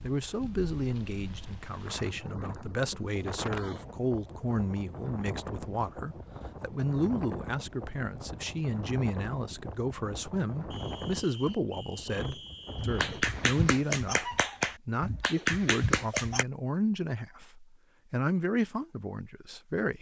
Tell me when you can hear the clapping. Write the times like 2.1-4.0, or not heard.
12.8-16.4.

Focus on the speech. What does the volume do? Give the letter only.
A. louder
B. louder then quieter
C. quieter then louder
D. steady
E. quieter
D.